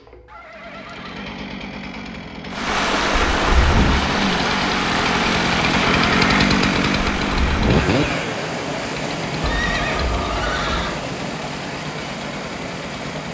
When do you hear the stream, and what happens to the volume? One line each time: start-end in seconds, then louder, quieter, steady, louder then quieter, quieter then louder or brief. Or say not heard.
2.5-13.2 quieter.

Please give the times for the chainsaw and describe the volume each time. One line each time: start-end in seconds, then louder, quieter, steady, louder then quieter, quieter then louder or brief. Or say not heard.
0.0-13.2 louder then quieter.